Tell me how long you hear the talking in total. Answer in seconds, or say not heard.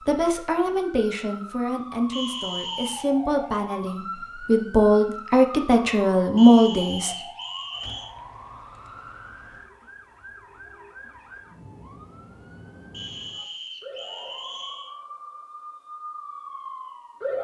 7 s.